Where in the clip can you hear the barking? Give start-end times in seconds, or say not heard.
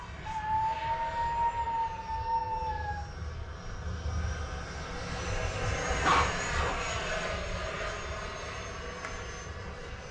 0.2-3.0, 6.0-6.8.